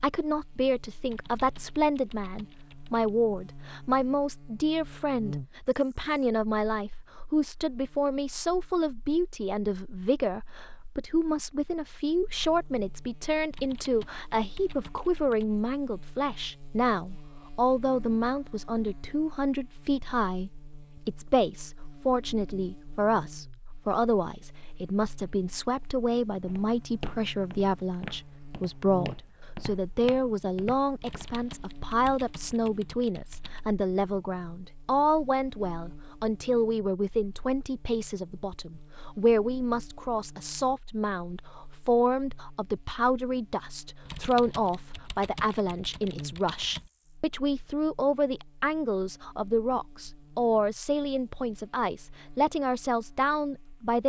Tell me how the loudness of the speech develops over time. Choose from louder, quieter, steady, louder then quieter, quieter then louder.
steady.